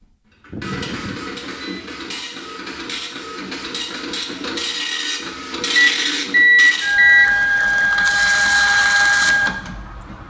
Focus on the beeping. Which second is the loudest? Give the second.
7 s.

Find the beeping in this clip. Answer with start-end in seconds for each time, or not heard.
0.5-1.9, 5.8-7.3.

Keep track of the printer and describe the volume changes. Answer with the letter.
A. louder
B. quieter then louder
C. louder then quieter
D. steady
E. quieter
A.